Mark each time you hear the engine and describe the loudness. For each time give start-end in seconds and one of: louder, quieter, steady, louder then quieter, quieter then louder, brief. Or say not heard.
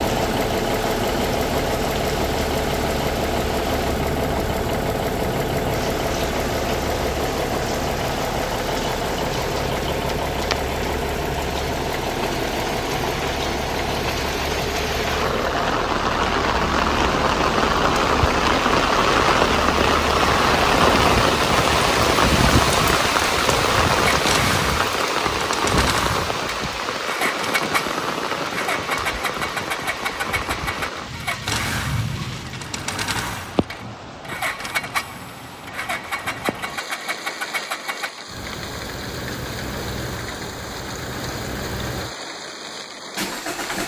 0.0-43.8 quieter.